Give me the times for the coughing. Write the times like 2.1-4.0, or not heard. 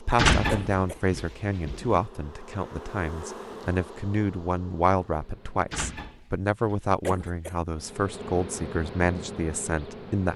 0.5-1.0, 7.0-7.5.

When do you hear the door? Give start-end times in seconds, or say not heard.
0.1-2.0, 5.7-7.5.